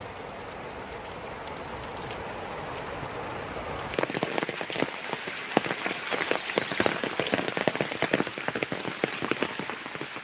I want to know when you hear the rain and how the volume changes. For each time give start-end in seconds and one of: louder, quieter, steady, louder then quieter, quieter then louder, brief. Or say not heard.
0.0-10.1 louder.